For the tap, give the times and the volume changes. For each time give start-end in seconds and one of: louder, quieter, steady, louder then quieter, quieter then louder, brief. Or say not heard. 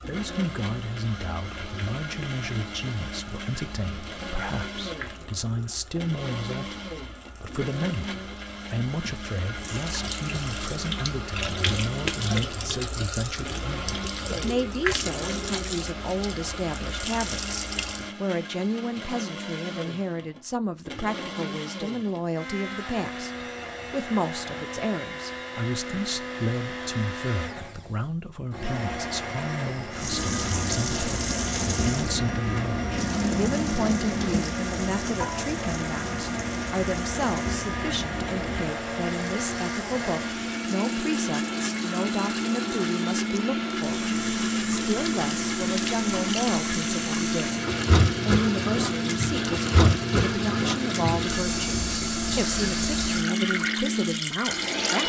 0.0-18.1 louder
29.9-55.0 quieter then louder.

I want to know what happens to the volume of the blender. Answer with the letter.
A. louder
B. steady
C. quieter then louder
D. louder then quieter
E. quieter
A.